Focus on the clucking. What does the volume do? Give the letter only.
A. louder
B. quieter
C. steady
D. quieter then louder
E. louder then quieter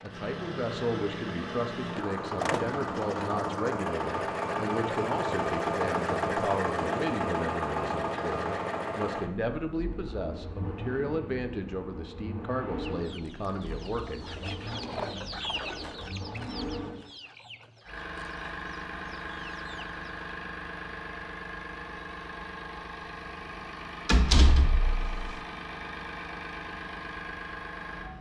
E.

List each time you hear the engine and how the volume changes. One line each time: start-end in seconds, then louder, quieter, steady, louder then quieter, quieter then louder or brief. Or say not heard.
0.0-28.1 quieter.